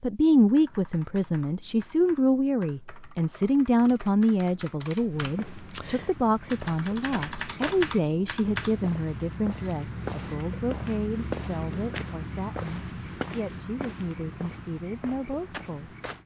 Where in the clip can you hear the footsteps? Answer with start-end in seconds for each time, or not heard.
5.1-16.2.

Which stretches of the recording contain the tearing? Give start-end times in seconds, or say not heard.
not heard.